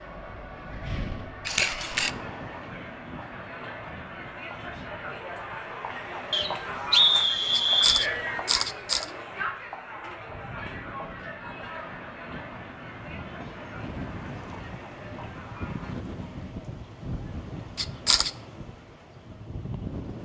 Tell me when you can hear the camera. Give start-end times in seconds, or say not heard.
1.4-2.1, 7.5-9.1, 17.8-18.3.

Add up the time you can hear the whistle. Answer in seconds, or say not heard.
2 s.